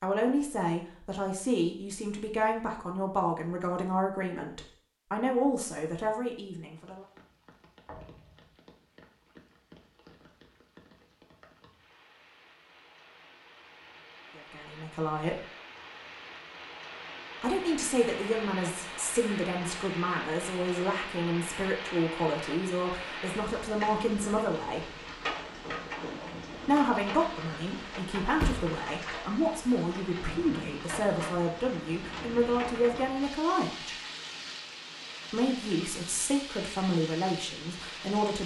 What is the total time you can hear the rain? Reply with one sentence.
You can hear the rain for 32 seconds altogether.